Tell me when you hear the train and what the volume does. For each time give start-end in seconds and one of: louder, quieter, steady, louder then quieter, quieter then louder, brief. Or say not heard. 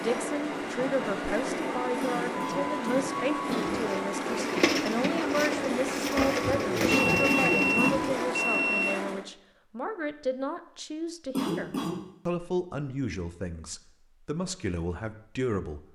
0.0-9.2 steady.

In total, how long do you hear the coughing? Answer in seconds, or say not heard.
4 s.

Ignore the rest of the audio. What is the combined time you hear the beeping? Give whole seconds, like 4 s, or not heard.
2 s.